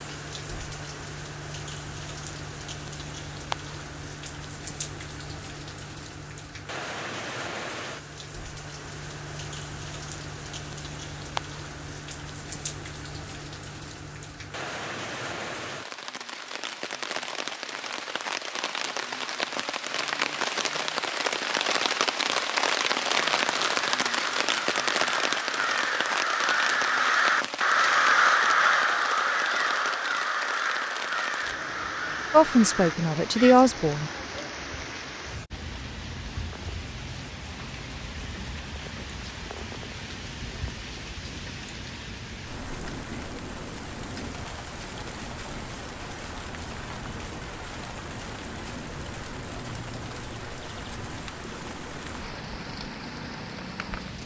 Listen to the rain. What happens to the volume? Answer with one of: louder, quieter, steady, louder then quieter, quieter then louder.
louder then quieter.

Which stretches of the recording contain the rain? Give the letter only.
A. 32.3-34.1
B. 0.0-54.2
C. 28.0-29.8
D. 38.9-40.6
B.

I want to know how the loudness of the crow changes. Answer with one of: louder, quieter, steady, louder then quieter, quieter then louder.
louder then quieter.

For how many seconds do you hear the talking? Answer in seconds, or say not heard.
2 s.